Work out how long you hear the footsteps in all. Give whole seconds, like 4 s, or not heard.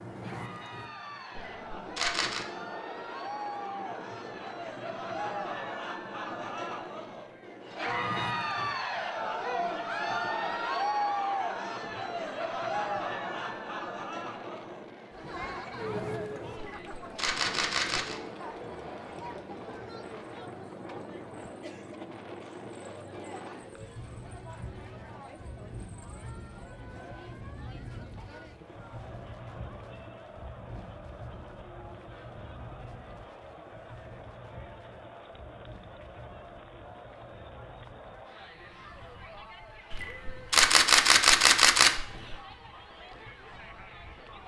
not heard.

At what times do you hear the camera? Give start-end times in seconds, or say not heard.
1.4-2.5, 16.6-18.2, 39.9-42.4.